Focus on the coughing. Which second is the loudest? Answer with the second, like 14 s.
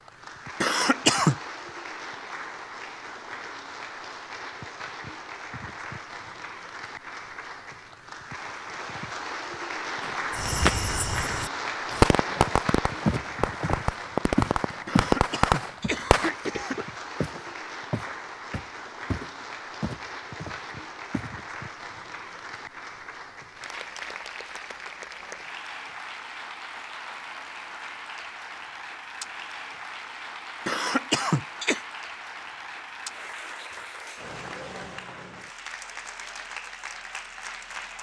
1 s.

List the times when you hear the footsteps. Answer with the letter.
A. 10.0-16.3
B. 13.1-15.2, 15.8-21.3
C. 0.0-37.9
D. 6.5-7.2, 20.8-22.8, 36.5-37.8
B.